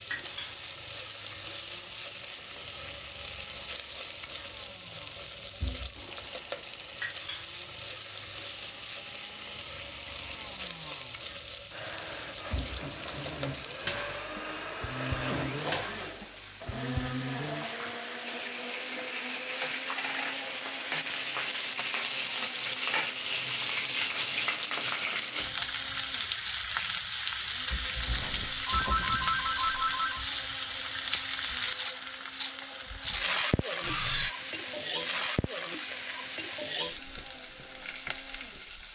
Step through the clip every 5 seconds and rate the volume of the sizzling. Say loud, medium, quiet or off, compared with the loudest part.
medium, medium, medium, medium, loud, loud, loud, medium.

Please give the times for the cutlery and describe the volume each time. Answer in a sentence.
You can hear the cutlery briefly from 26.4 to 27.4 s; briefly from 27.9 to 28.9 s; and from 29.5 to 34.3 s, at a steady volume.